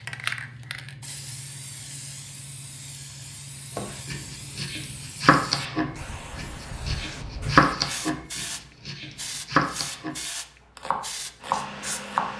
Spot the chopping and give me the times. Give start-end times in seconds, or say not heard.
3.8-12.3.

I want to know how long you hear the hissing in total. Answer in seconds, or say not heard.
12 s.